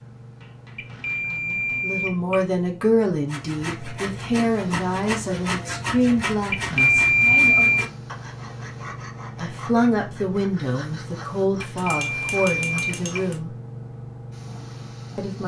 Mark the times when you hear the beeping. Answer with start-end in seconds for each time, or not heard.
0.8-2.5, 6.5-7.8, 11.7-13.4.